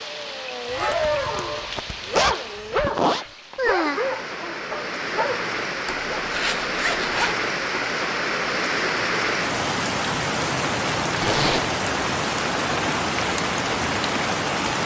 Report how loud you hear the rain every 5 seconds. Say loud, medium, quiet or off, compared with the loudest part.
medium, loud, loud.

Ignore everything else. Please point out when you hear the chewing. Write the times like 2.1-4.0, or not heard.
not heard.